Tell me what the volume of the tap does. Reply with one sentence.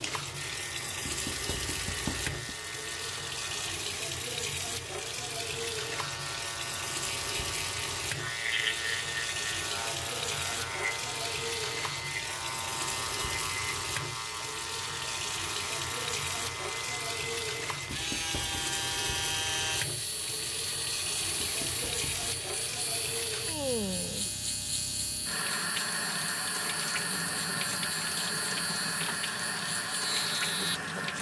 The loudness of the tap stays about the same.